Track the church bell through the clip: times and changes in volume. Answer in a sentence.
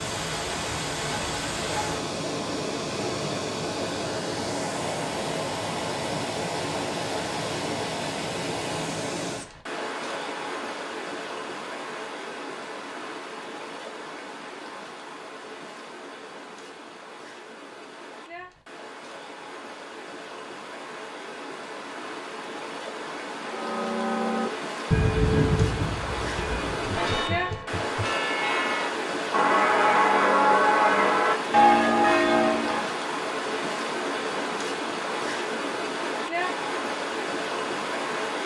You can hear the church bell from 23.4 to 33.0 s, getting quieter then louder.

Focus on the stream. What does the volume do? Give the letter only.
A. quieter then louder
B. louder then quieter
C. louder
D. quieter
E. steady
A.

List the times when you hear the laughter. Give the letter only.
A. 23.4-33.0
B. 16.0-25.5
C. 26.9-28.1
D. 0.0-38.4
C.